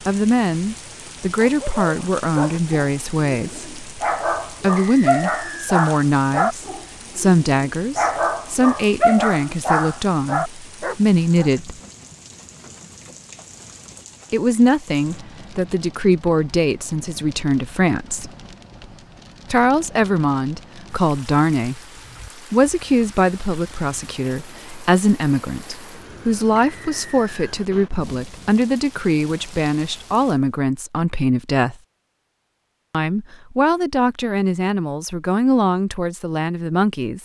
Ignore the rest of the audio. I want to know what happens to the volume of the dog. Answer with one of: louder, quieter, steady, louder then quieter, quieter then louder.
louder.